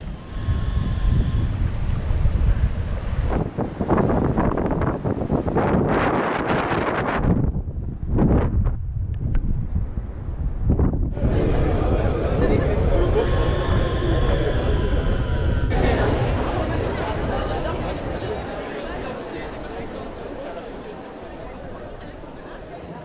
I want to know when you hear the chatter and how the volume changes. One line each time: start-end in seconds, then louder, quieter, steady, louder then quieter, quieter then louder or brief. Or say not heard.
11.1-23.0 quieter.